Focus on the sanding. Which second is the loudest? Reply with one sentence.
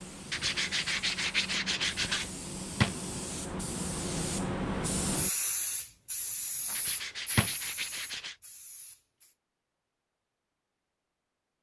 The loudest moment of the sanding is at 1 second.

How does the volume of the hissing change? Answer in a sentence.
The loudness of the hissing goes up, then down.